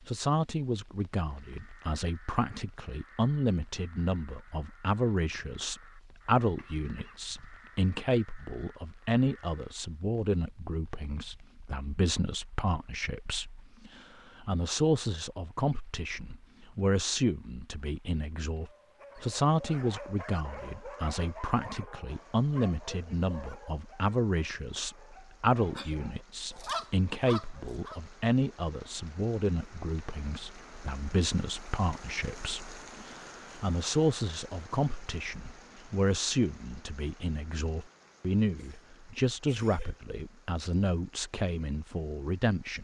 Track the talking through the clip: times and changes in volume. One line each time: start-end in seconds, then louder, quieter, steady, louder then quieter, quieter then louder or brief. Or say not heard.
0.1-42.7 steady.